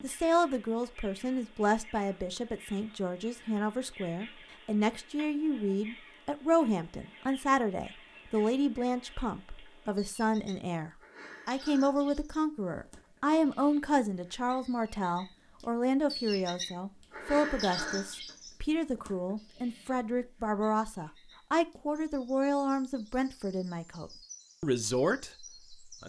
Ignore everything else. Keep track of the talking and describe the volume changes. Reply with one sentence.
The loudness of the talking stays about the same.